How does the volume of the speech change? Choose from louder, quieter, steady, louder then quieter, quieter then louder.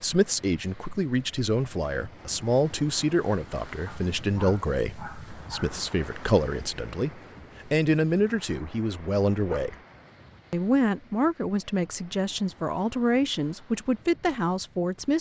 steady.